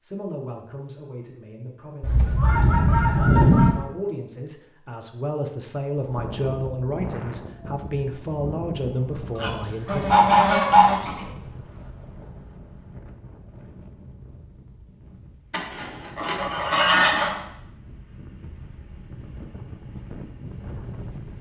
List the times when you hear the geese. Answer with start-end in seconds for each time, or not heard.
2.0-3.8, 9.3-11.2, 15.5-17.4.